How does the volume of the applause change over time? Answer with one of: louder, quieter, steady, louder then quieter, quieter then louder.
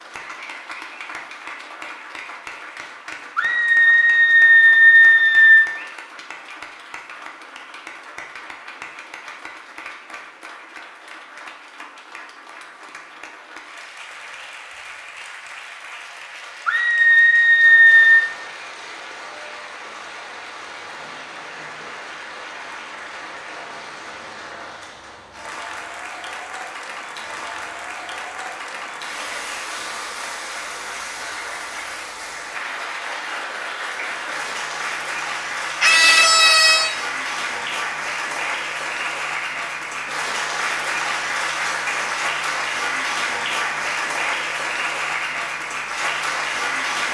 louder.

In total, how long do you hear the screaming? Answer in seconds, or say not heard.
5 s.